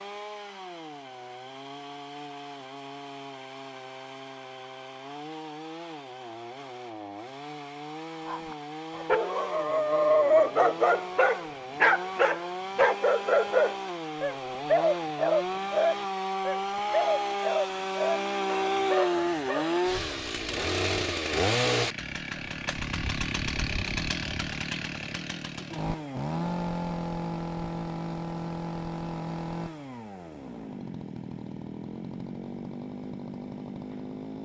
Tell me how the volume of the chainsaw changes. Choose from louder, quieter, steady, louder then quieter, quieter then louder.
louder then quieter.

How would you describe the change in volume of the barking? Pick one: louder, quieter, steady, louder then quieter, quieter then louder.
quieter.